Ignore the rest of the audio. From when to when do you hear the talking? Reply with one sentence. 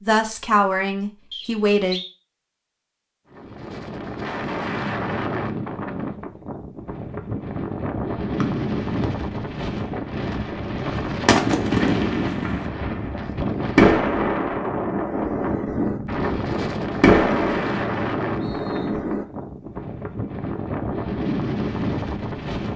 The talking can be heard from 0.0 to 2.0 s.